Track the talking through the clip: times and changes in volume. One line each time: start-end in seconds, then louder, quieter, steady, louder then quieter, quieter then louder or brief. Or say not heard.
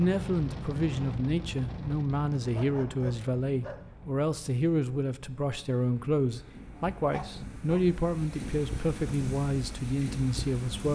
0.0-10.9 steady.